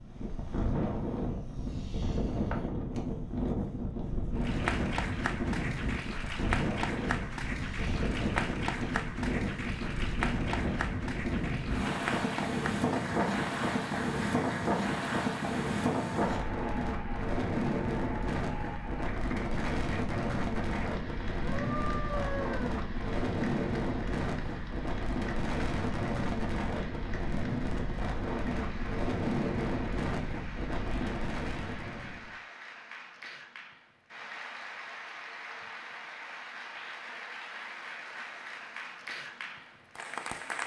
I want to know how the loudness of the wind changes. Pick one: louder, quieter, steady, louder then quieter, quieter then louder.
steady.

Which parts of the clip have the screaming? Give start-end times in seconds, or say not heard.
21.4-22.8.